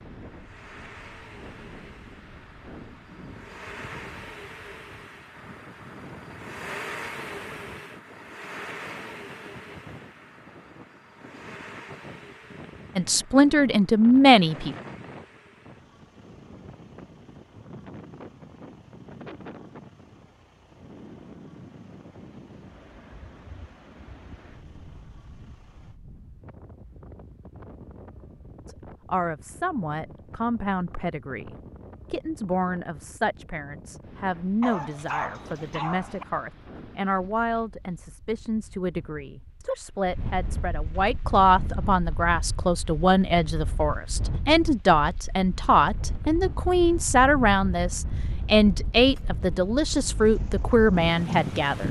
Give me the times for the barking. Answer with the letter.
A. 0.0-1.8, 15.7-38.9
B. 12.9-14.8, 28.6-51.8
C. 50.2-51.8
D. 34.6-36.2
D.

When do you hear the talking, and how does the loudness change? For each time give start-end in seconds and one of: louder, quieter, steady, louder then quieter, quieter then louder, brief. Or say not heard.
12.9-14.8 brief
28.6-51.8 louder.